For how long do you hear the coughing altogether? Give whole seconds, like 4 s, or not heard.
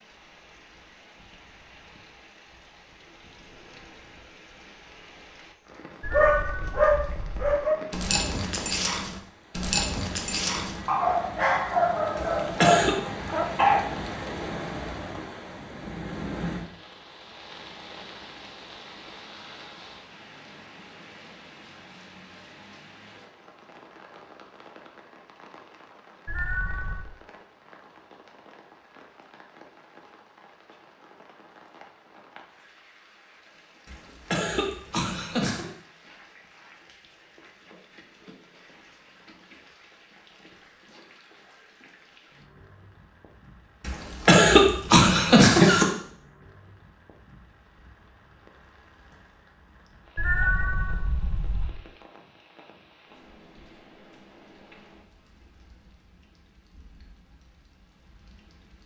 5 s.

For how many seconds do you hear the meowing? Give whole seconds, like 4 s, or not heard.
4 s.